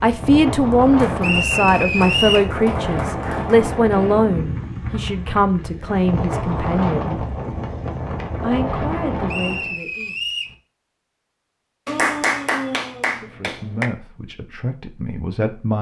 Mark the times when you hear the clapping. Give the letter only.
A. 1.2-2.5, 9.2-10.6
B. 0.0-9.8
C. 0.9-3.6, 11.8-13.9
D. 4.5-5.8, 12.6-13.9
C.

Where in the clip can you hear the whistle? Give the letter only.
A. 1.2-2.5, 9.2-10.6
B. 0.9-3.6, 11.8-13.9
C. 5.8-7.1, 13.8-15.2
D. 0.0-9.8
A.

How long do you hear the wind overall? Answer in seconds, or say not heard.
10 s.